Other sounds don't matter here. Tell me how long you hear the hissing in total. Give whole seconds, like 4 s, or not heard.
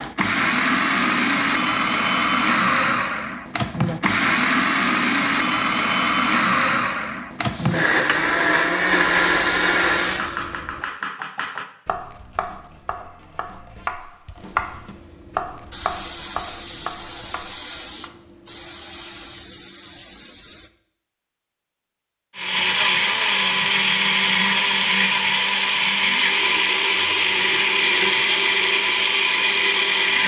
10 s.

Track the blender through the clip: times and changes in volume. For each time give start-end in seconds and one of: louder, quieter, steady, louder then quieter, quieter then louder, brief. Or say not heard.
0.0-10.3 steady
22.4-30.2 steady.